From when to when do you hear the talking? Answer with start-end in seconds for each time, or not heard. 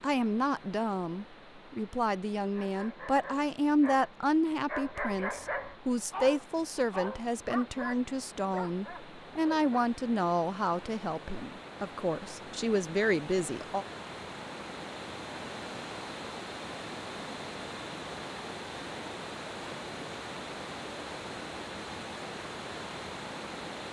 0.0-13.8.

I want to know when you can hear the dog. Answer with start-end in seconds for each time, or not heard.
2.5-9.9.